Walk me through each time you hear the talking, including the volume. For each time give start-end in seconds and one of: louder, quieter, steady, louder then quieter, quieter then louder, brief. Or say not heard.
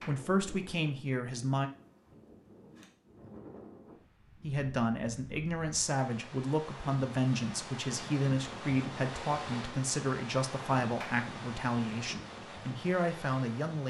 0.1-1.7 brief
4.4-13.8 steady.